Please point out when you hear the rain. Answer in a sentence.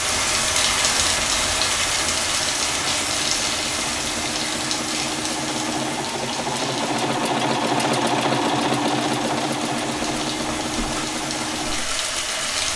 You can hear the rain from 0.0 to 12.7 s.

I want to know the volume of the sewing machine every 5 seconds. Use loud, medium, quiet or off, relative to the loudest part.
medium, loud, medium.